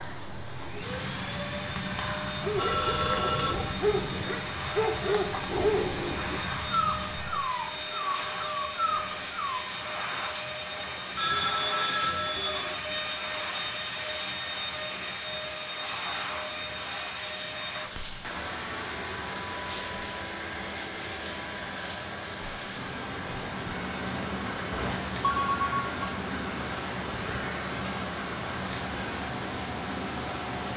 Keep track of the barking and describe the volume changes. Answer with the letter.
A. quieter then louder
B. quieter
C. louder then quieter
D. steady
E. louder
D.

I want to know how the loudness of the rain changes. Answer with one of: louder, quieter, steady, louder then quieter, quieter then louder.
steady.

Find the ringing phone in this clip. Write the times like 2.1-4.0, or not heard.
2.5-3.8, 11.2-12.8, 24.7-25.9.